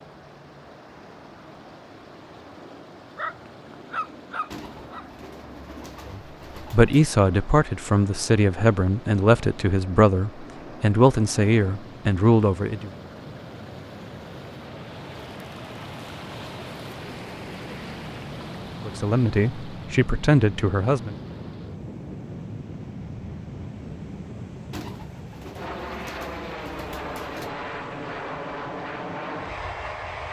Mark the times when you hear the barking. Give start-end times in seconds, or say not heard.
3.1-5.1.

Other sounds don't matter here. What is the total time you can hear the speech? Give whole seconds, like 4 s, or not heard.
9 s.